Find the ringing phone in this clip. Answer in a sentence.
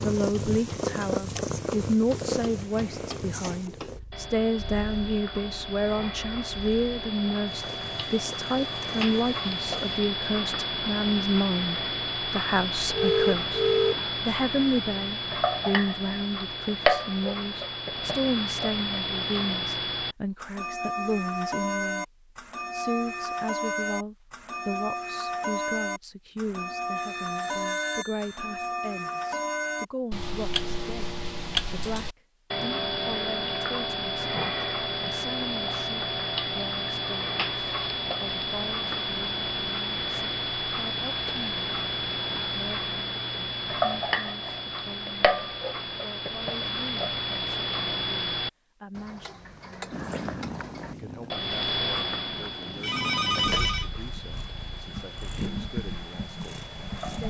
You can hear the ringing phone from 12.9 to 13.9 s, from 26.9 to 28.6 s and from 52.8 to 53.9 s.